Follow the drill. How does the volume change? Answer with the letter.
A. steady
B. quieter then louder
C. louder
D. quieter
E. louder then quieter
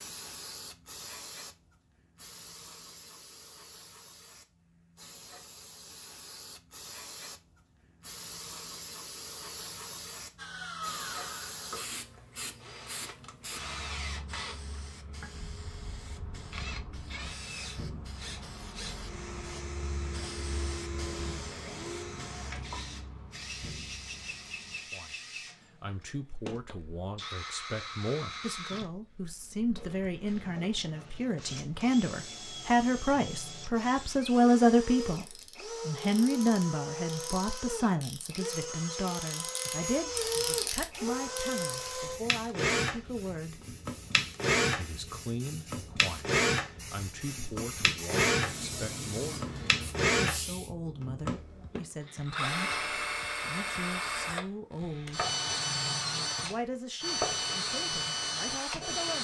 C.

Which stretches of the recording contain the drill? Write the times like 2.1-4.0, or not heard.
10.3-59.1.